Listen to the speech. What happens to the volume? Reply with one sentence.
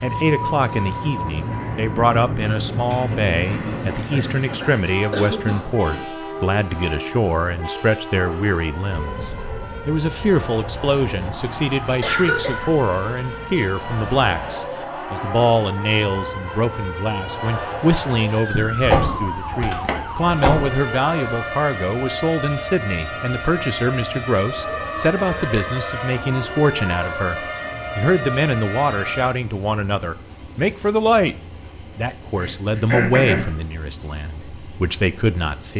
The loudness of the speech stays about the same.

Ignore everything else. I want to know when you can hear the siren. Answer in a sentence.
The siren can be heard from 8.1 to 29.4 s.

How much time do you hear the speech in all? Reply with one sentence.
You can hear the speech for 35 seconds altogether.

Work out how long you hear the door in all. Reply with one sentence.
The door can be heard for 2 seconds in total.